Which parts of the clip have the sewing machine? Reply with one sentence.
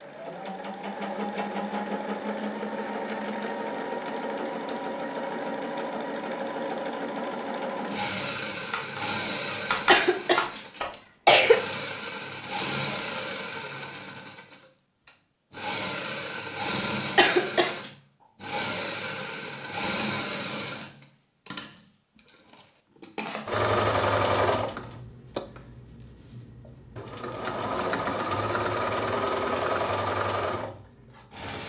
You can hear the sewing machine from 0.0 to 31.6 s.